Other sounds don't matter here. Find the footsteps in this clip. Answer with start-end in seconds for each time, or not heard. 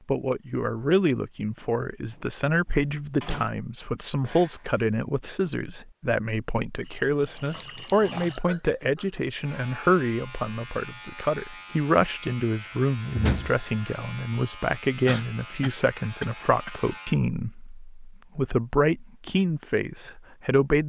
not heard.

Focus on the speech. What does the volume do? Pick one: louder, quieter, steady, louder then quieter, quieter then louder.
steady.